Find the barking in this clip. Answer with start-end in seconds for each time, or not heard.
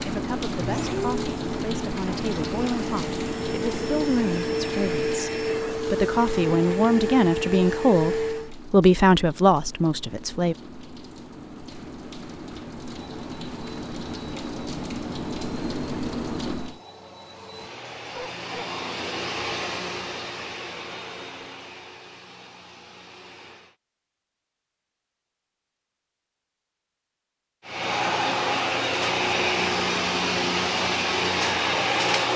18.1-18.7.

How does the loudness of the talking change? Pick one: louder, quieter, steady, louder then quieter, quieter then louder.
louder.